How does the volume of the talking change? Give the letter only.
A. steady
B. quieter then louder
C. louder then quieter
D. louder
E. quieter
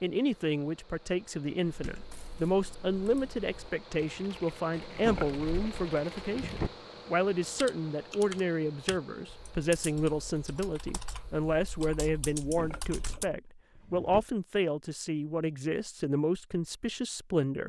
A.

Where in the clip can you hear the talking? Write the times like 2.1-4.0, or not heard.
0.0-17.6.